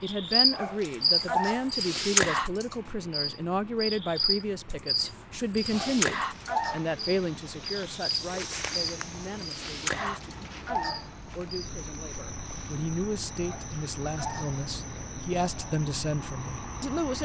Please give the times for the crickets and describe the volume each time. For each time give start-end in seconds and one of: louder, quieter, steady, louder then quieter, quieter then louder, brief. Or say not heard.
0.1-17.2 quieter.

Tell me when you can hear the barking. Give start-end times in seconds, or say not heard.
0.5-1.7, 5.7-6.9, 9.9-11.1, 13.4-14.6.